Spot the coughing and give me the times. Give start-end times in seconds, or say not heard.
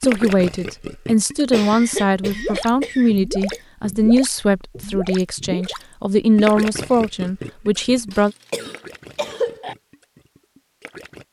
1.5-3.6, 8.1-9.8.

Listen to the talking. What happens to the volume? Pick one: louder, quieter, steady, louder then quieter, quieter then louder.
steady.